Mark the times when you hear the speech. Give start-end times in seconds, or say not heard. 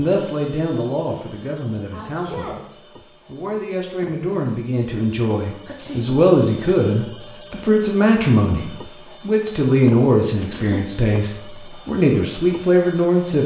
0.0-13.4.